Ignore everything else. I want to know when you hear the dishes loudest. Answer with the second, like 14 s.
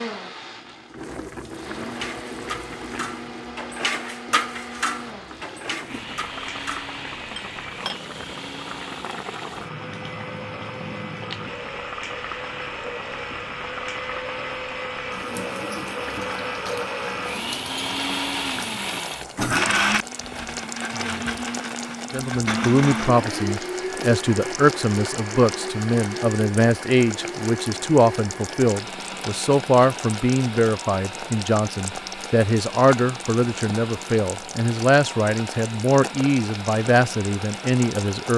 4 s.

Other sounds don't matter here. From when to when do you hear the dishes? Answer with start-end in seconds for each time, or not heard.
1.9-8.0.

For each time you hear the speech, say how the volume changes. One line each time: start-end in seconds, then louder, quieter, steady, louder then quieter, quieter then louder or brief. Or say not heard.
22.1-38.3 steady.